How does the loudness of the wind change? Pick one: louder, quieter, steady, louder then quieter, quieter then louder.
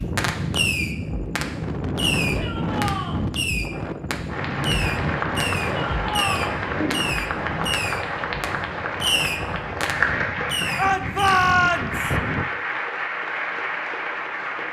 quieter.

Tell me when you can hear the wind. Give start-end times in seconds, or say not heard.
0.0-12.4.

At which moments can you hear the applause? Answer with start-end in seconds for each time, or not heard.
4.2-14.6.